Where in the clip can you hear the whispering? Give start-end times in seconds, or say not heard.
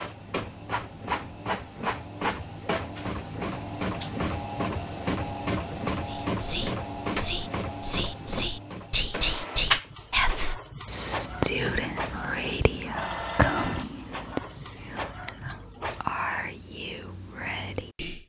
6.0-18.2.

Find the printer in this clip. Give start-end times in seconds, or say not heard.
0.0-16.1.